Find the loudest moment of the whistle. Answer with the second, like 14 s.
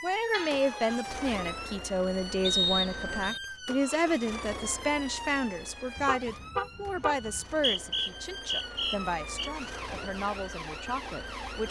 3 s.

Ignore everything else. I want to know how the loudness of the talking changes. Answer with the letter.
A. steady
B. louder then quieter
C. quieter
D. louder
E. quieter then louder
C.